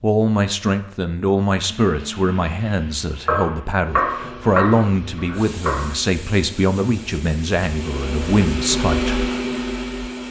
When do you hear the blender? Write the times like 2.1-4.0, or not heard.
1.6-10.2.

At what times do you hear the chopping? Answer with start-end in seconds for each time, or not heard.
3.2-6.0.